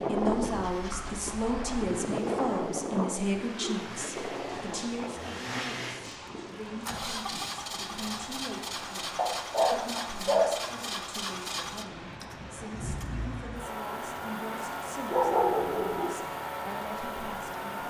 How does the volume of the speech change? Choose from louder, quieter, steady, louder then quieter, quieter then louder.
quieter.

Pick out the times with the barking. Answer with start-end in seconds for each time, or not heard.
0.3-1.9, 4.5-6.9, 9.2-10.6, 15.1-16.1.